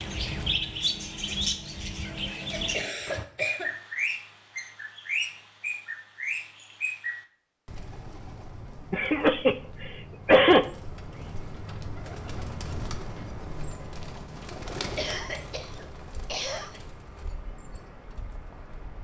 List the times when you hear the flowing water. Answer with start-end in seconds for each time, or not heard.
not heard.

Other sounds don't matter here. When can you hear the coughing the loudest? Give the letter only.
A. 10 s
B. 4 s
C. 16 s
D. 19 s
A.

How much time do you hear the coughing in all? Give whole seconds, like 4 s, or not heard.
5 s.